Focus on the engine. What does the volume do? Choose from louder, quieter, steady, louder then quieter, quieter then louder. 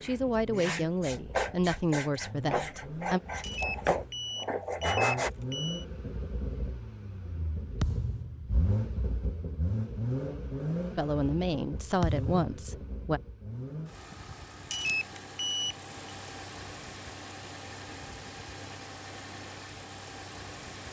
louder then quieter.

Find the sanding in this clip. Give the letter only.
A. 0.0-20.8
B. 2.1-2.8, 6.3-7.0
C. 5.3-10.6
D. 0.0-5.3
D.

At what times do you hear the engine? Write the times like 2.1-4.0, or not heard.
0.0-20.8.